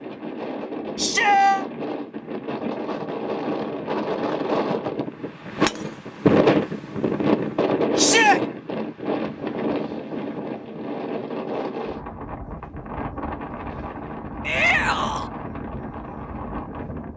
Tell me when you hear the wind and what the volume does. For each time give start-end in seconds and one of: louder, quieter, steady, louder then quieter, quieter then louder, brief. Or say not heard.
0.0-17.1 louder then quieter.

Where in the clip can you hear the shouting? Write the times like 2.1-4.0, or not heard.
0.9-1.6, 8.0-8.4, 14.4-15.3.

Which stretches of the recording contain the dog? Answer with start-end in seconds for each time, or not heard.
not heard.